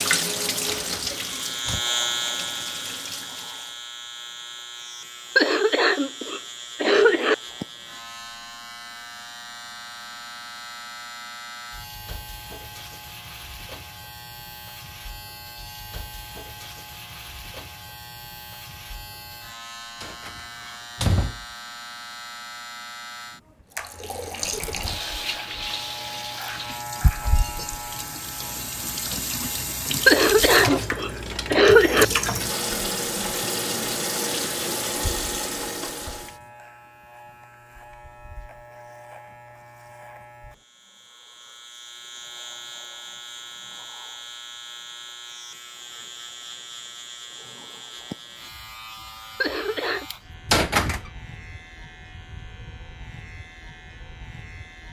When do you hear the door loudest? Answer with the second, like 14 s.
51 s.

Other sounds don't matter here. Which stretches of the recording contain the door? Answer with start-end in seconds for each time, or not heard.
0.7-1.9, 20.0-21.4, 50.5-51.0.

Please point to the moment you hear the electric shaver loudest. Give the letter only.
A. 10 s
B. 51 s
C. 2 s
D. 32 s
C.